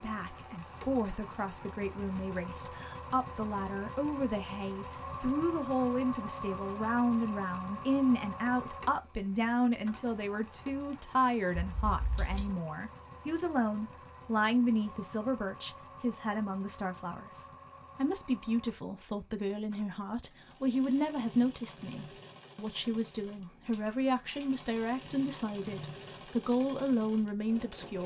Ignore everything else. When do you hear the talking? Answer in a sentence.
The talking can be heard from 0.0 to 28.0 s.